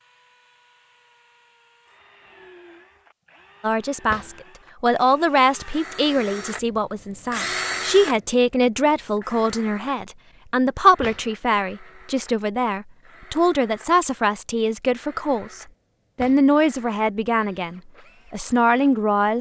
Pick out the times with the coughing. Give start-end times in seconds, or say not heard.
not heard.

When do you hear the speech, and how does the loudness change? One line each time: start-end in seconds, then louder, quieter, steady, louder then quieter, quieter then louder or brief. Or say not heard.
3.6-19.3 steady.